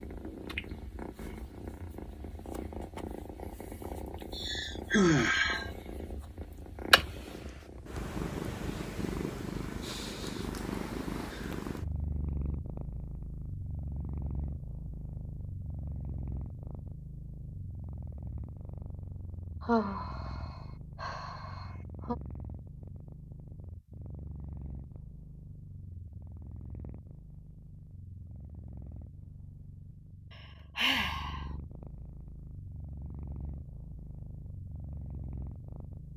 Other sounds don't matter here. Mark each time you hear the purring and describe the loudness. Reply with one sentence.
The purring can be heard from 0.0 to 36.1 s, getting quieter.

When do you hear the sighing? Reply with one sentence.
You can hear the sighing from 4.3 to 5.7 s, from 19.6 to 22.1 s and from 30.8 to 31.4 s.